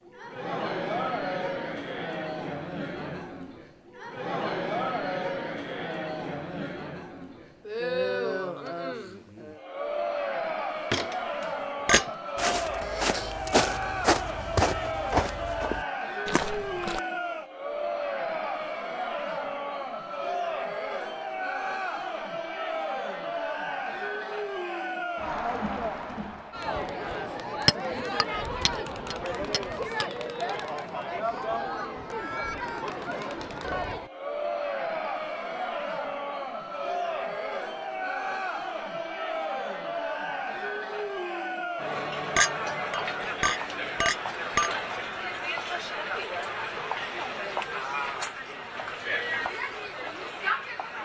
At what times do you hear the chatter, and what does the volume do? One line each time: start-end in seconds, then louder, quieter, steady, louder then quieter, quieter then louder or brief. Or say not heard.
0.0-51.0 steady.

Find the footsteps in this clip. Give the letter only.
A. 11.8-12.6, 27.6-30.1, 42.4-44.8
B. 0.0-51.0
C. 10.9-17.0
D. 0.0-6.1
C.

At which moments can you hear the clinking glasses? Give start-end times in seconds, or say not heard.
11.8-12.6, 27.6-30.1, 42.4-44.8.